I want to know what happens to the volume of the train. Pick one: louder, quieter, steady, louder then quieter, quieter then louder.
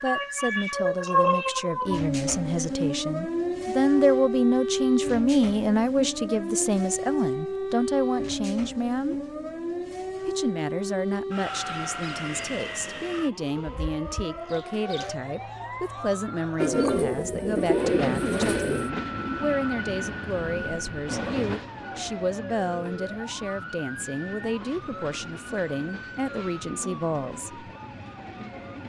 quieter.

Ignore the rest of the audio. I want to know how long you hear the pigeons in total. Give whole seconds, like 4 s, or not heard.
2 s.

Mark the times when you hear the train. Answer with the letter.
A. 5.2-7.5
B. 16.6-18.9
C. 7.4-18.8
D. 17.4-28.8
D.